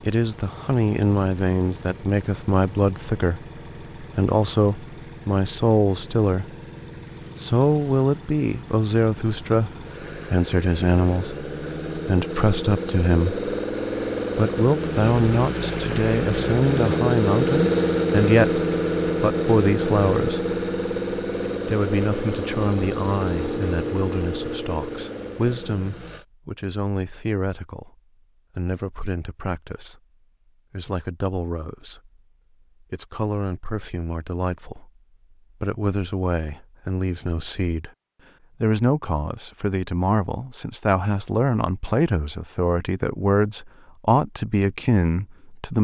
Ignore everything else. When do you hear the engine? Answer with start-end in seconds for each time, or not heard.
0.0-26.2.